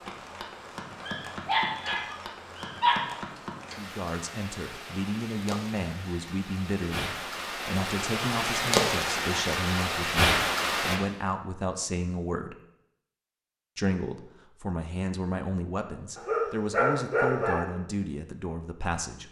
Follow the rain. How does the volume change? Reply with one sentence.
The loudness of the rain goes up.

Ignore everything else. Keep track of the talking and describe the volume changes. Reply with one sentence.
The volume of the talking stays about the same.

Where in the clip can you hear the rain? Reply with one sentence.
You can hear the rain from 0.0 to 11.0 s.